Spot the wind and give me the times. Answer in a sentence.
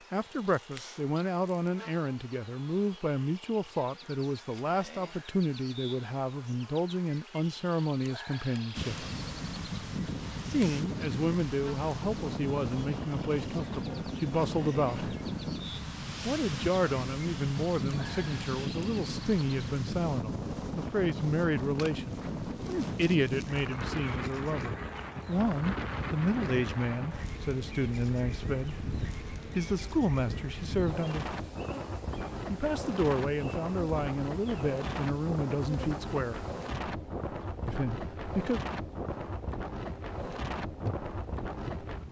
You can hear the wind from 8.7 to 42.0 s.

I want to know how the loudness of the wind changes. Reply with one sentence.
The loudness of the wind stays about the same.